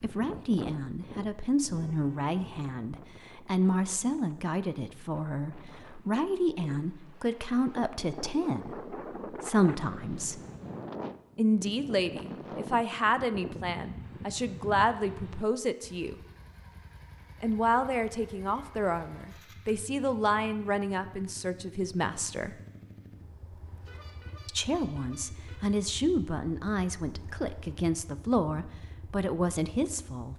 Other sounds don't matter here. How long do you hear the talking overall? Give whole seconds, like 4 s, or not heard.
26 s.